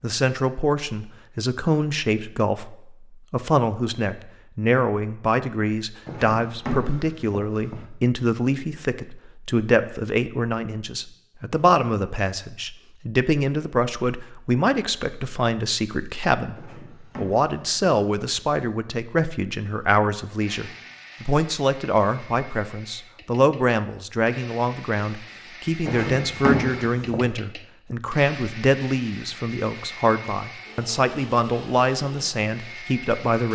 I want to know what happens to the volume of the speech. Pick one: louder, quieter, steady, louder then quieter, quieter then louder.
steady.